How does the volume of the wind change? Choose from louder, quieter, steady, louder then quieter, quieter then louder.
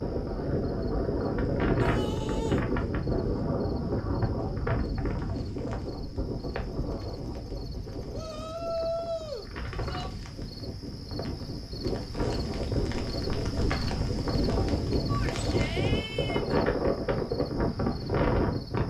quieter then louder.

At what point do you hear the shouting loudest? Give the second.
9 s.